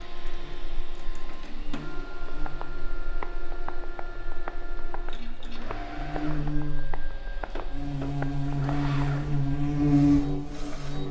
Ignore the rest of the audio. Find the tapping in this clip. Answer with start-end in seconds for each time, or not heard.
2.2-9.2.